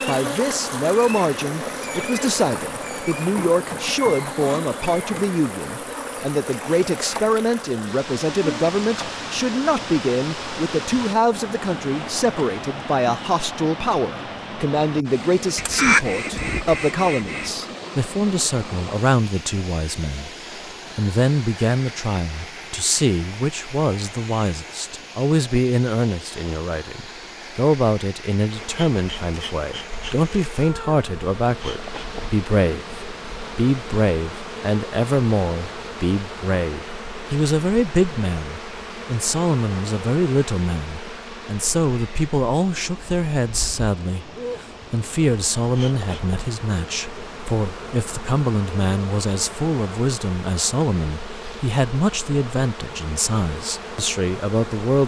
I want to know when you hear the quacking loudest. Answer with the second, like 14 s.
16 s.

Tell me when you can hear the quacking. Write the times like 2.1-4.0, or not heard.
15.6-17.5.